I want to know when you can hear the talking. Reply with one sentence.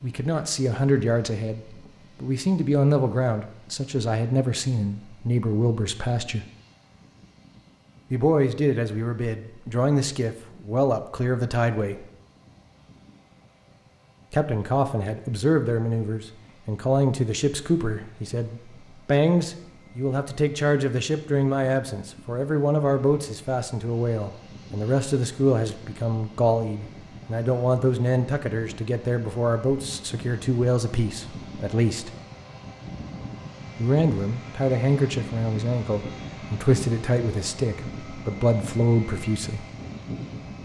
You can hear the talking from 0.0 to 6.5 s, from 8.1 to 12.1 s, from 14.3 to 32.1 s and from 33.8 to 39.6 s.